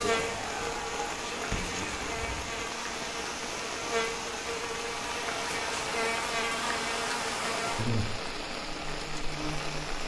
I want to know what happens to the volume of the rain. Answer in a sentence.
The loudness of the rain stays about the same.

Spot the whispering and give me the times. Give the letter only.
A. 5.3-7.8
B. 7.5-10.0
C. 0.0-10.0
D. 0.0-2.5
D.